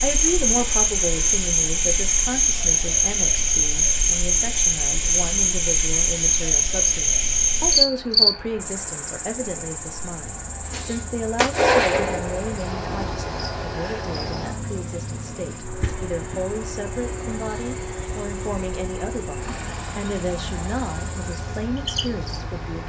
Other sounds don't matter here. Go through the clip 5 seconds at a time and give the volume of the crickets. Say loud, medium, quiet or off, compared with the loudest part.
loud, loud, quiet, quiet, quiet.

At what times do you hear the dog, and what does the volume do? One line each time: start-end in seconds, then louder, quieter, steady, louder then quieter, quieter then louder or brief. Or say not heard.
not heard.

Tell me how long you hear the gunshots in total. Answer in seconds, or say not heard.
2 s.